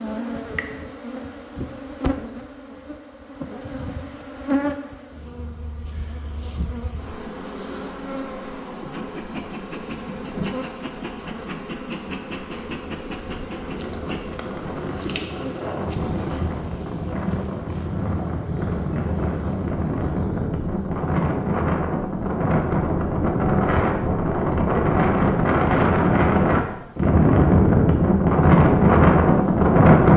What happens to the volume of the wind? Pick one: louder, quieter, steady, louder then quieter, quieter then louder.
louder.